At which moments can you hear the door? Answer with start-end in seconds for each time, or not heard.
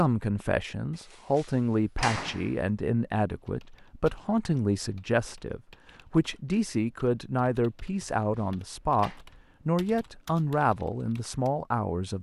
1.1-2.5, 8.2-9.2.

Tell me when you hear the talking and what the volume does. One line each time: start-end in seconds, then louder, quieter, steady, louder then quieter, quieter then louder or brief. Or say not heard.
0.0-12.1 steady.